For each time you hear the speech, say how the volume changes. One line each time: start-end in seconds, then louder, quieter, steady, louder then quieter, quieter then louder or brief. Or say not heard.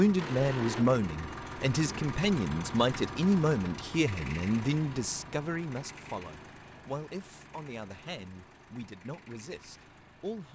0.0-10.5 quieter.